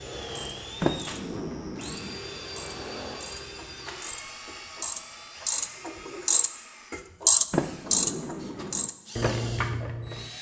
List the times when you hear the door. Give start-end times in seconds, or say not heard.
0.8-2.1, 7.5-8.9.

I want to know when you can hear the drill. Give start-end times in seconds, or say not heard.
0.0-10.3.